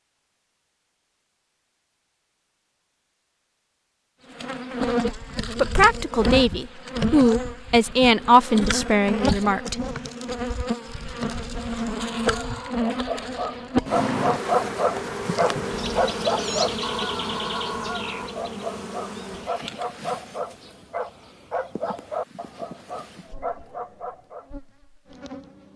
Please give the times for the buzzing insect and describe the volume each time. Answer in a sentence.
The buzzing insect can be heard from 4.3 to 25.7 s, getting quieter.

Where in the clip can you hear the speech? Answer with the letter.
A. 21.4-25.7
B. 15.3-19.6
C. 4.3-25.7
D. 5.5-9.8
D.